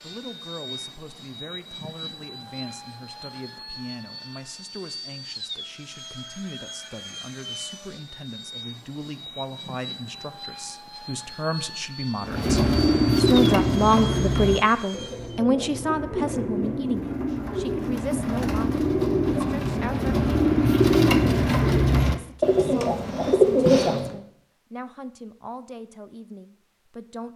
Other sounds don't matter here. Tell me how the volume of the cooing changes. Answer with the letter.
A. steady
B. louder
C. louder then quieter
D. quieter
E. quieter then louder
E.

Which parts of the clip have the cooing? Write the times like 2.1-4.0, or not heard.
12.2-24.2.